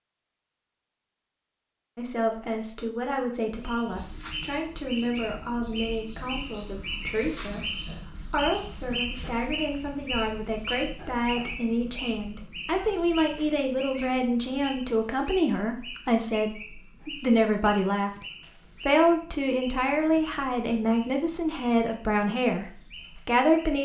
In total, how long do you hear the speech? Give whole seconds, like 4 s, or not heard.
22 s.